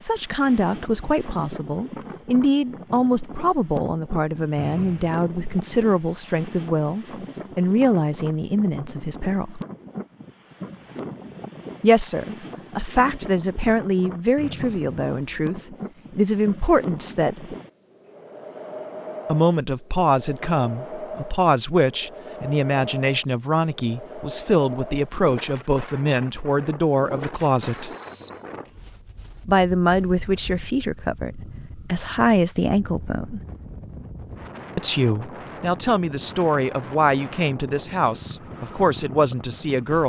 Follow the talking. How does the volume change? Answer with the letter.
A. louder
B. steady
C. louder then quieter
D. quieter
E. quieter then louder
B.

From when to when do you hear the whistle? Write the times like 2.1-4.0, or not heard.
4.5-5.2, 14.3-15.3, 27.6-28.4.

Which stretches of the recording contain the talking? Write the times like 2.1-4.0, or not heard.
0.0-9.6, 11.8-17.6, 19.2-27.9, 29.4-33.4, 34.8-40.0.